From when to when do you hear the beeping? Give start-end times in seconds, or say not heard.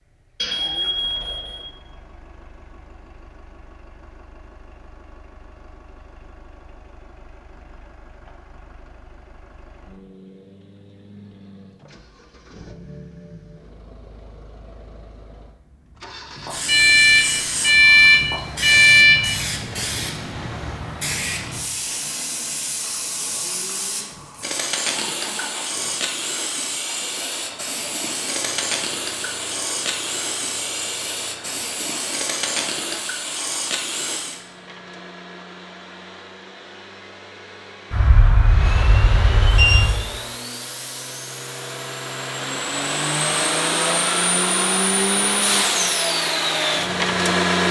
0.4-1.6, 16.6-19.2, 37.9-39.9.